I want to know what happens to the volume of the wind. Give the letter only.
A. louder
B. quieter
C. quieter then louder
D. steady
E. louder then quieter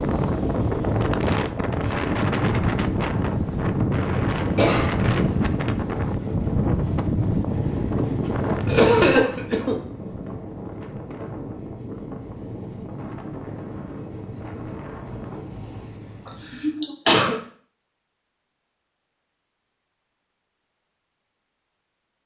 B.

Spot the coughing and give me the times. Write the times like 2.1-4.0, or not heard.
4.3-5.6, 8.7-9.8, 16.2-17.4.